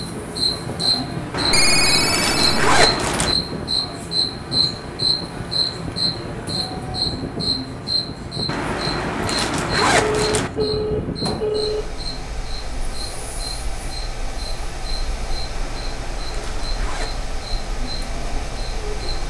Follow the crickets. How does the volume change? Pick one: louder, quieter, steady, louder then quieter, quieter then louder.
quieter.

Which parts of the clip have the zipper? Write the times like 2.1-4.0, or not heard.
1.3-3.4, 8.4-10.5, 15.5-17.2.